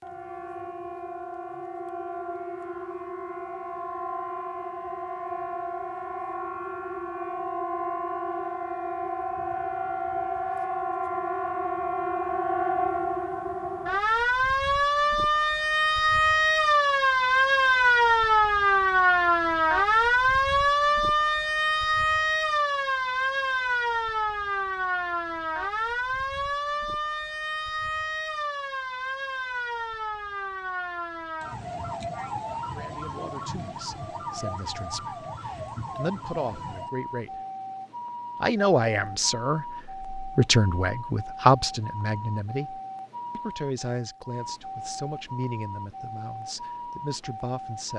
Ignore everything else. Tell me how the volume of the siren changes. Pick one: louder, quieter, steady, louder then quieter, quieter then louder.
louder then quieter.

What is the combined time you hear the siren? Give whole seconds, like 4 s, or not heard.
48 s.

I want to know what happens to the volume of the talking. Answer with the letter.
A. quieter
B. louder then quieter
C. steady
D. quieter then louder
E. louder
B.